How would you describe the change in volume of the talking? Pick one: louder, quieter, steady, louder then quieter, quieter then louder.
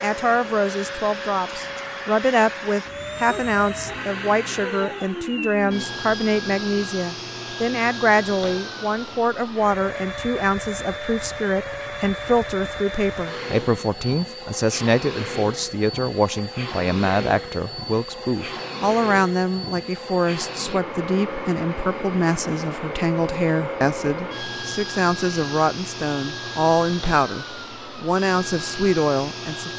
steady.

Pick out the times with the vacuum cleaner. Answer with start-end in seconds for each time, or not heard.
0.0-29.7.